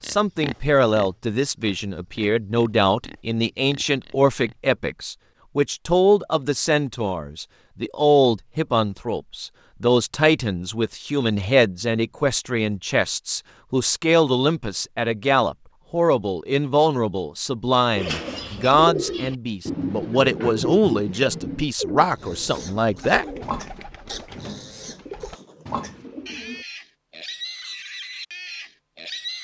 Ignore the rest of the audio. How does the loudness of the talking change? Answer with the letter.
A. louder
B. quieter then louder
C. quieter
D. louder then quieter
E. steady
E.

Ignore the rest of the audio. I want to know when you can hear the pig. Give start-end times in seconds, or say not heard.
0.0-4.5, 22.1-29.3.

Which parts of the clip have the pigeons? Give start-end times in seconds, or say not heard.
17.9-26.6.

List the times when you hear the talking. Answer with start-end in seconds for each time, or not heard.
0.0-23.2.